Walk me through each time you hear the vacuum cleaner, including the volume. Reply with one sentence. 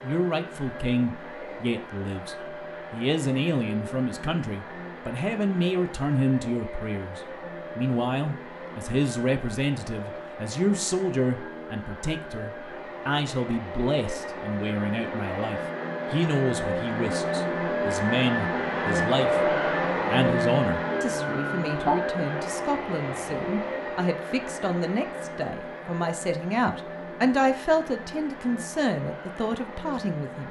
The vacuum cleaner can be heard from 0.0 to 30.4 s, getting louder then quieter.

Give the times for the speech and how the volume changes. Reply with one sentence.
You can hear the speech from 0.0 to 30.4 s, at a steady volume.